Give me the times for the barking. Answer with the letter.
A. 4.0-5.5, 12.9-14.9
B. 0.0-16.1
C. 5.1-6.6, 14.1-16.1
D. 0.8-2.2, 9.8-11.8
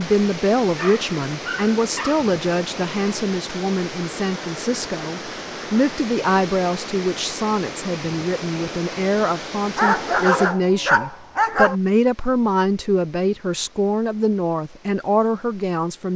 D.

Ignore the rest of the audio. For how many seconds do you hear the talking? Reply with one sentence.
The talking can be heard for 16 seconds in total.